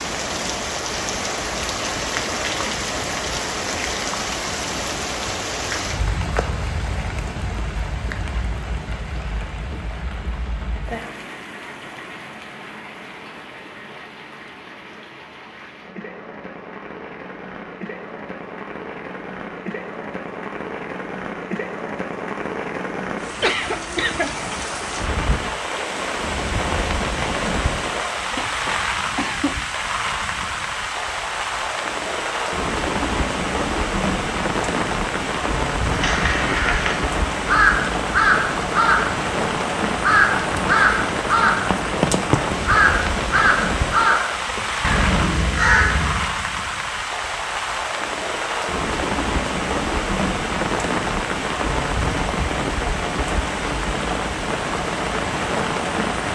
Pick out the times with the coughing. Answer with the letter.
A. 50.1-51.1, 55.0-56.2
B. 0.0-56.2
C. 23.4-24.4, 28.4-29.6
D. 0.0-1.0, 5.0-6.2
C.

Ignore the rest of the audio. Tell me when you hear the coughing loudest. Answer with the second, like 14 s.
24 s.